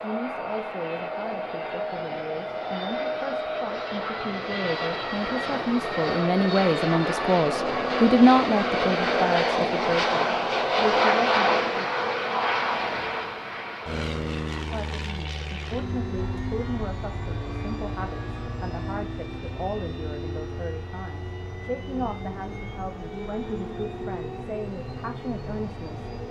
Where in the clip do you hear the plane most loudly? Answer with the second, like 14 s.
11 s.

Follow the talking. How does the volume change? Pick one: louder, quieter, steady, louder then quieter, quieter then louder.
louder then quieter.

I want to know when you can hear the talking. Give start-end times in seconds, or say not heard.
0.0-11.8, 14.7-26.1.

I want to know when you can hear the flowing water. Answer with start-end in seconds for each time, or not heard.
not heard.